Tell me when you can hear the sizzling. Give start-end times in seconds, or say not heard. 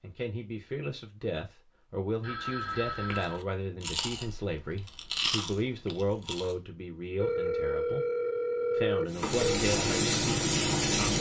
9.1-11.1.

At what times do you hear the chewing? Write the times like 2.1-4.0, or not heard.
2.9-6.5.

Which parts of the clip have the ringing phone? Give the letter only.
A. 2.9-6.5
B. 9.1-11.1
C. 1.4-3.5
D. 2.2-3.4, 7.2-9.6
D.